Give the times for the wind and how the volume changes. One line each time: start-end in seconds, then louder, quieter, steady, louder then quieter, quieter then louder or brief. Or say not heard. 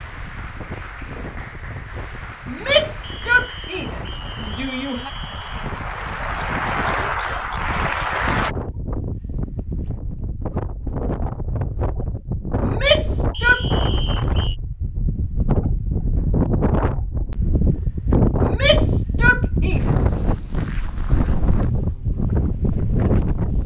0.0-23.6 louder.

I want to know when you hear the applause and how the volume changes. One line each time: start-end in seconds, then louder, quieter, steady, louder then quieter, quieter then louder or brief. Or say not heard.
0.0-8.6 louder.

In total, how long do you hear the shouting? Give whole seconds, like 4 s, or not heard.
5 s.